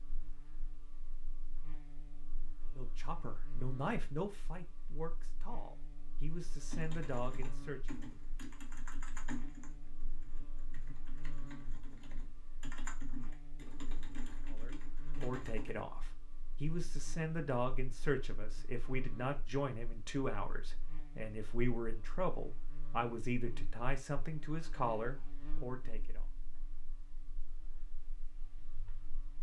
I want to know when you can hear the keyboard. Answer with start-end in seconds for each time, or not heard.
6.7-15.8.